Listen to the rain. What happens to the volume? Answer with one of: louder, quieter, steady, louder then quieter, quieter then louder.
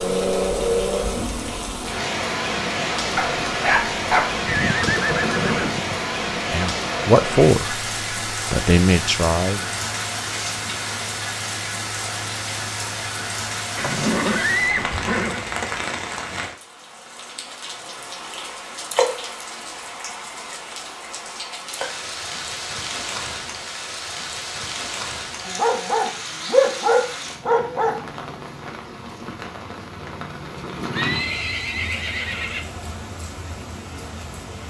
quieter.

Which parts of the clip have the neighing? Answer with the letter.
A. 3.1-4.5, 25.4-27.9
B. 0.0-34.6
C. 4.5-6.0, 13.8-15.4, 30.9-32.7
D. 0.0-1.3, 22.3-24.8
C.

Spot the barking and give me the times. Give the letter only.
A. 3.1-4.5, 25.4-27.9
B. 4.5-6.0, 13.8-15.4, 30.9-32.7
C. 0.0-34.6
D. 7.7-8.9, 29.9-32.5
A.